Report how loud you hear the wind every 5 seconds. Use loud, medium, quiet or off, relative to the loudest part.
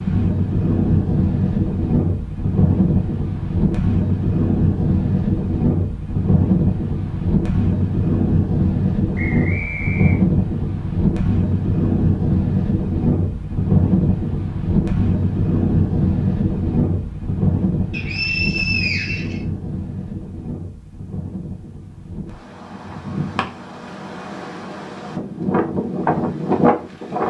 loud, loud, loud, loud, quiet, loud.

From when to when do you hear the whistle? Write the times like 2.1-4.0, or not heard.
9.2-10.2, 17.9-19.4.